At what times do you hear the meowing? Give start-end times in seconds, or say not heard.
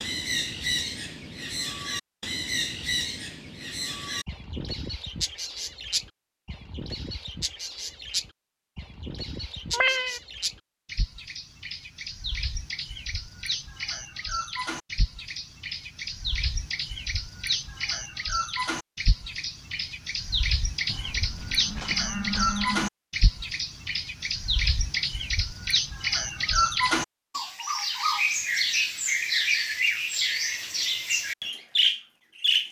9.7-10.2.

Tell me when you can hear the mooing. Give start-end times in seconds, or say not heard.
20.9-22.9.